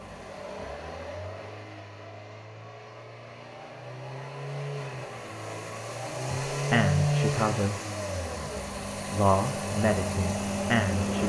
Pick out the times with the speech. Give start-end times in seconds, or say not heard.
6.3-7.8, 9.1-11.2.